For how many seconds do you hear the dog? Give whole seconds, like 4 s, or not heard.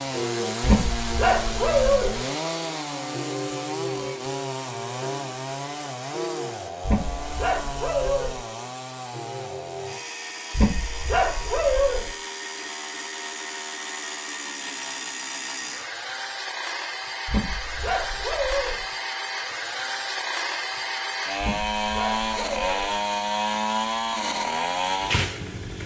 8 s.